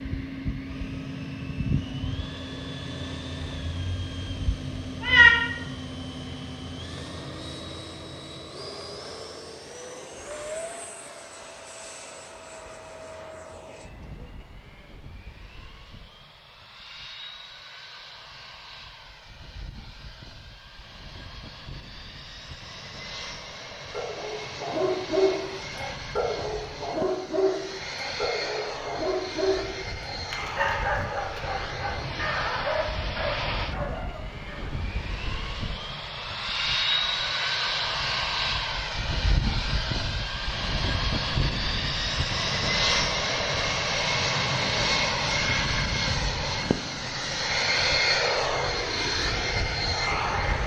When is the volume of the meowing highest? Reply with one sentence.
The volume of the meowing peaks at 5 seconds.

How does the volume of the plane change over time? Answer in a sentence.
The loudness of the plane goes down, then up.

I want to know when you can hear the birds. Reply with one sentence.
The birds can't be heard in this clip.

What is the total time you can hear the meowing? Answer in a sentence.
You can hear the meowing for 2 seconds altogether.